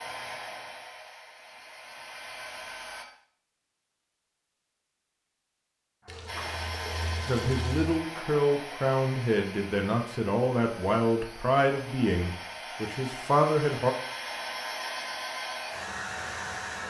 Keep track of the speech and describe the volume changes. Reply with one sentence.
The volume of the speech stays about the same.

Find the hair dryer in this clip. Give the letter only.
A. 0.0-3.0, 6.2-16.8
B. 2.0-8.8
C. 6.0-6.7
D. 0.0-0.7
A.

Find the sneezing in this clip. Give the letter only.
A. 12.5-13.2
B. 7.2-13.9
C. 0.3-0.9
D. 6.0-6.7
D.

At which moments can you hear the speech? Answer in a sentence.
The speech can be heard from 7.2 to 13.9 s.